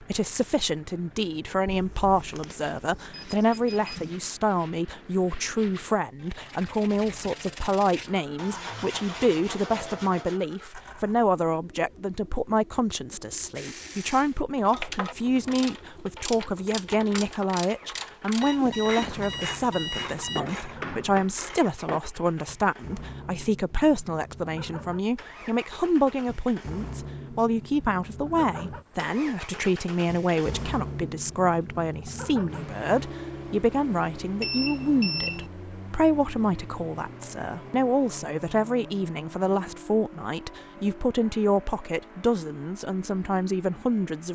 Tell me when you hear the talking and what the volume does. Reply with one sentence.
You can hear the talking from 0.0 to 44.3 s, at a steady volume.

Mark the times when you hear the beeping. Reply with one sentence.
You can hear the beeping from 1.6 to 4.3 s, from 18.4 to 20.4 s and from 34.4 to 35.5 s.